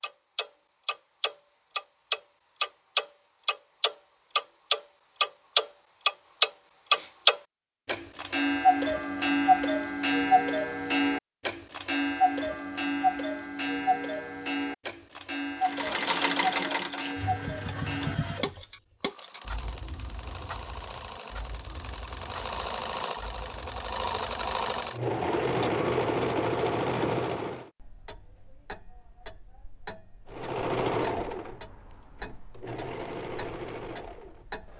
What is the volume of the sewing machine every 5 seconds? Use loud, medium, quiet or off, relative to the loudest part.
off, off, off, medium, medium, loud, medium.